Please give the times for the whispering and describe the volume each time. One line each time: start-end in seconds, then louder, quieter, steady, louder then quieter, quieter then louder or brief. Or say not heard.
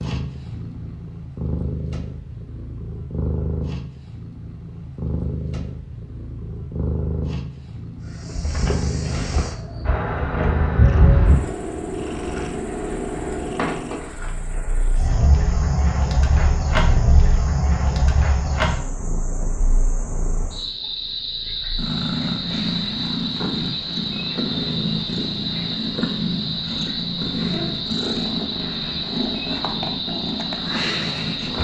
not heard.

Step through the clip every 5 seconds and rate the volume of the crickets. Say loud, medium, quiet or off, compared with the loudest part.
off, medium, loud, loud, loud, loud, loud.